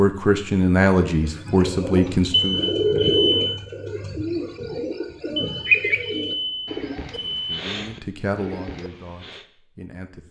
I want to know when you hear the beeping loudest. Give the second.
3 s.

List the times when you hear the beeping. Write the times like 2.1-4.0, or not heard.
2.3-3.5, 5.3-7.5.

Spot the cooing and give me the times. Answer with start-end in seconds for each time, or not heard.
1.1-9.4.